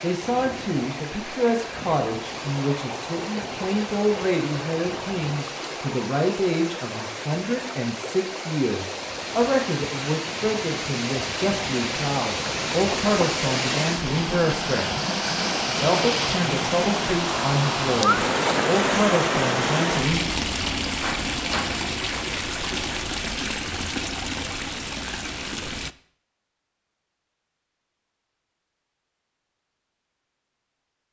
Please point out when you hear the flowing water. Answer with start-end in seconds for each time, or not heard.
0.0-25.9.